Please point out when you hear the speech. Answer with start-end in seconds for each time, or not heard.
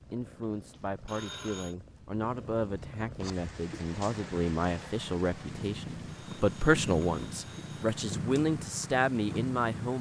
0.1-9.9.